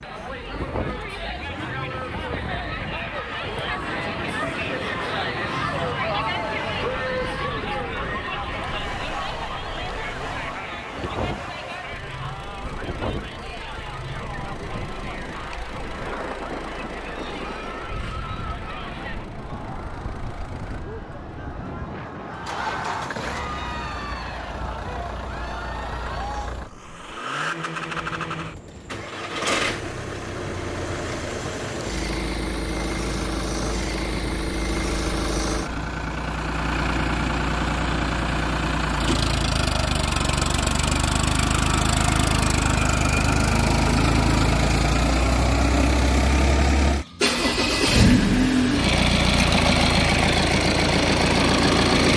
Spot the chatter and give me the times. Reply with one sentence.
You can hear the chatter from 0.0 to 26.5 s.